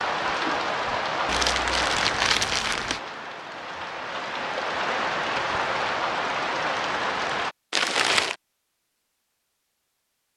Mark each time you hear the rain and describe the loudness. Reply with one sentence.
You can hear the rain from 0.0 to 7.5 s, getting quieter then louder.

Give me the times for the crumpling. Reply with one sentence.
You can hear the crumpling from 1.2 to 3.0 s and from 7.7 to 8.3 s.